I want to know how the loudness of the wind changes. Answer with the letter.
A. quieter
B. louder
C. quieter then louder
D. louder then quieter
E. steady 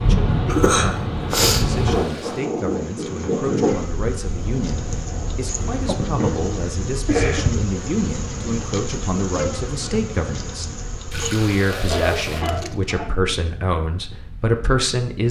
A.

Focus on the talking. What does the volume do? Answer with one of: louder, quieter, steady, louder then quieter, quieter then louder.
louder.